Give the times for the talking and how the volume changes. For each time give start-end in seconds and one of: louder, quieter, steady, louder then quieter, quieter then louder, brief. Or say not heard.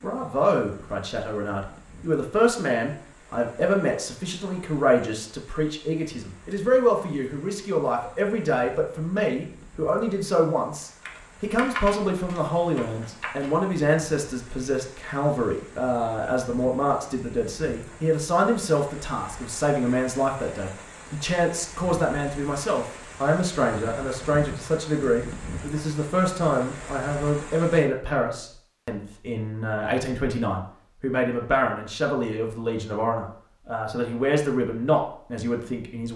0.0-36.1 steady.